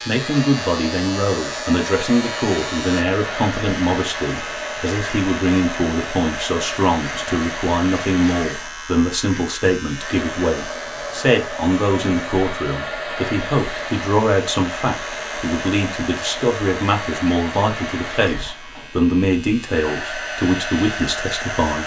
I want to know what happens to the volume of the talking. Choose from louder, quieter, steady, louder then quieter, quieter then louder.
steady.